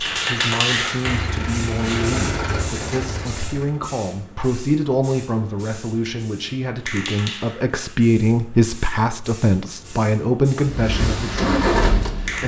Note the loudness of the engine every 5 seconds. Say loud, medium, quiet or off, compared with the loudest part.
medium, off, loud.